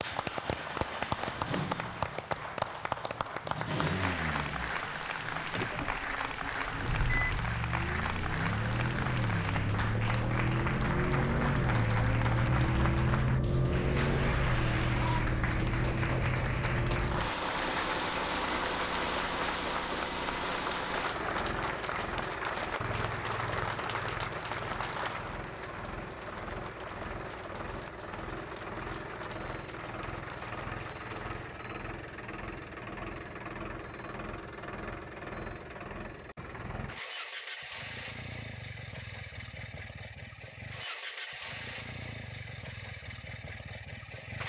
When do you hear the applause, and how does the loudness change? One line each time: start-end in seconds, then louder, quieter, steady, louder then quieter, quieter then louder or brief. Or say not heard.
0.0-31.7 quieter.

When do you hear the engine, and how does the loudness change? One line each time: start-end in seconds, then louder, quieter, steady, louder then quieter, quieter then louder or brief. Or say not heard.
0.0-44.4 louder then quieter.